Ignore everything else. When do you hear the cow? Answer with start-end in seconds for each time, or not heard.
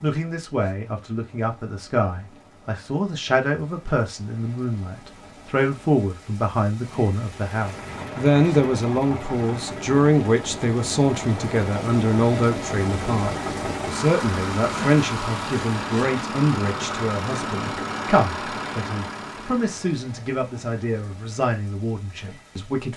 not heard.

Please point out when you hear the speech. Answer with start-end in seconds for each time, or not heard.
0.0-22.9.